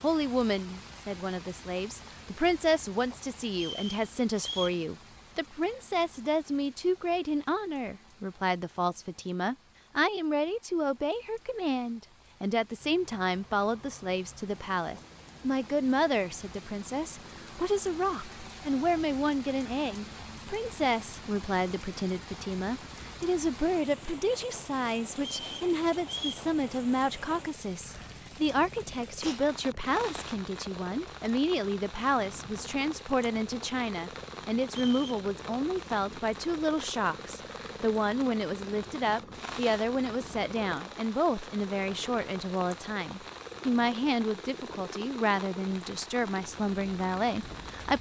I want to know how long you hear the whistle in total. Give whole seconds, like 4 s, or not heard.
3 s.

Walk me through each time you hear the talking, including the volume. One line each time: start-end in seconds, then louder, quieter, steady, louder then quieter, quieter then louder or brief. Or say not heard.
0.0-47.9 steady.